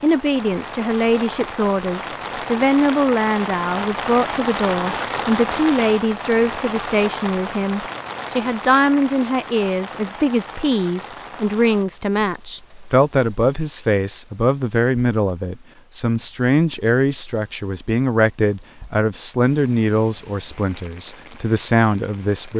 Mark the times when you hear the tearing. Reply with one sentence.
You can't hear the tearing here.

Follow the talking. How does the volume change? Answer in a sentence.
The loudness of the talking stays about the same.